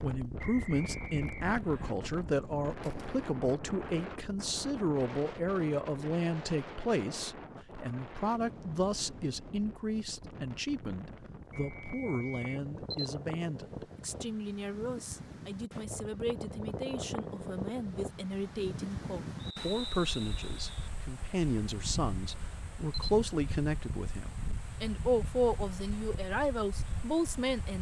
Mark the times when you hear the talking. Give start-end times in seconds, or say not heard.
0.0-27.7.